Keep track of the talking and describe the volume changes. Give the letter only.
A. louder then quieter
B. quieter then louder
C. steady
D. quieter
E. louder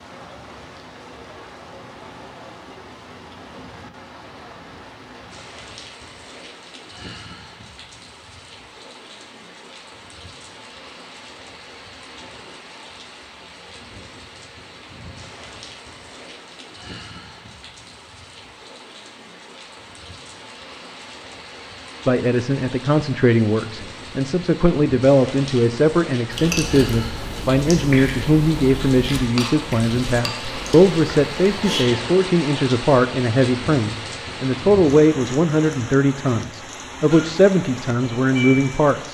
C.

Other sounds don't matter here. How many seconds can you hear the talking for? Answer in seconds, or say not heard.
17 s.